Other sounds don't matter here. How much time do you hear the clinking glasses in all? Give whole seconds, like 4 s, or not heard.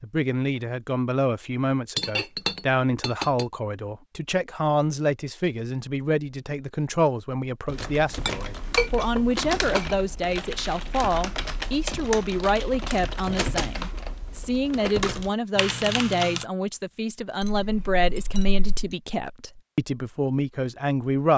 5 s.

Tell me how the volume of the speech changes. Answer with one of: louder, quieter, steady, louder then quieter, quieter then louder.
steady.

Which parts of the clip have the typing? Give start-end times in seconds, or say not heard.
7.7-16.4.